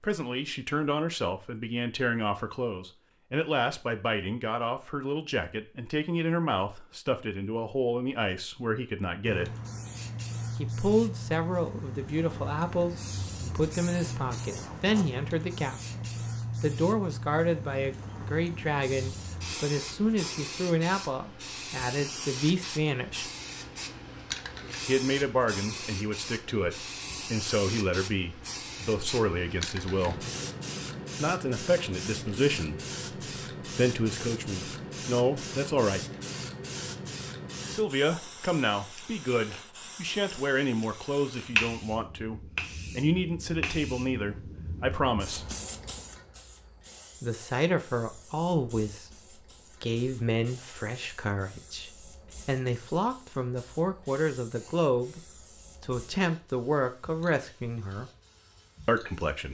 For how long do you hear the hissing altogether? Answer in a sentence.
The hissing can be heard for 50 seconds in total.